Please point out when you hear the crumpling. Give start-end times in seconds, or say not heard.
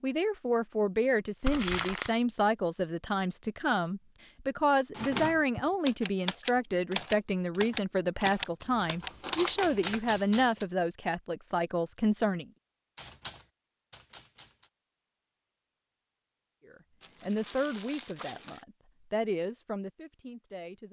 1.4-2.1, 8.6-10.0, 17.0-18.6.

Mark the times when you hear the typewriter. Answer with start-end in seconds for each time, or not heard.
5.0-10.7, 12.9-14.7.